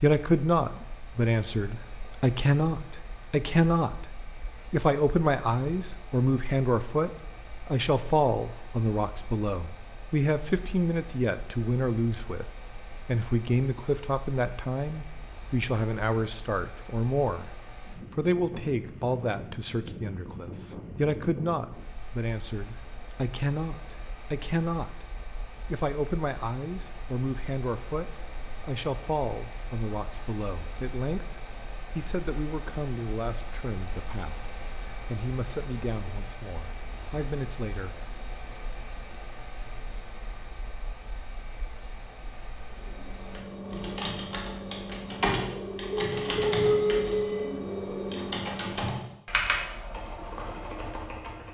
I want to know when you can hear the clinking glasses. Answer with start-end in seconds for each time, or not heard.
not heard.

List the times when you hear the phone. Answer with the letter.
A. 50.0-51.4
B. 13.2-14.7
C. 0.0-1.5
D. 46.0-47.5
D.